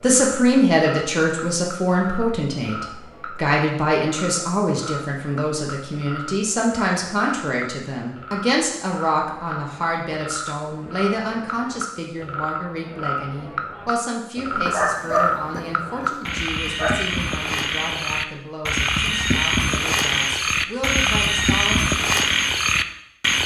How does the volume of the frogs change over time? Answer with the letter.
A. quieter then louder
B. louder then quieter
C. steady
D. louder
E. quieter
D.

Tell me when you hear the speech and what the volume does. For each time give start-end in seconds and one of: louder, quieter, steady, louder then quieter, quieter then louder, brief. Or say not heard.
0.0-21.9 quieter.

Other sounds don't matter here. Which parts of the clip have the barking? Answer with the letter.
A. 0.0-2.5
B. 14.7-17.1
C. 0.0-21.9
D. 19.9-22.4
B.